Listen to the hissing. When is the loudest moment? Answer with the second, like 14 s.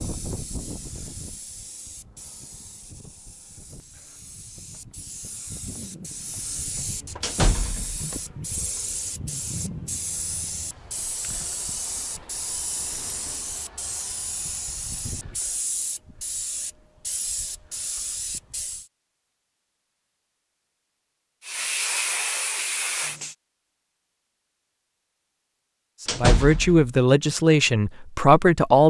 22 s.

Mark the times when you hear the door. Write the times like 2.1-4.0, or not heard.
7.2-8.1, 11.8-13.5, 26.1-26.9.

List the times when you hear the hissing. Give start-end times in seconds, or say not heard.
0.0-18.9, 21.4-23.4.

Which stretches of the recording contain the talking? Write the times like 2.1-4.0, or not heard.
26.0-28.8.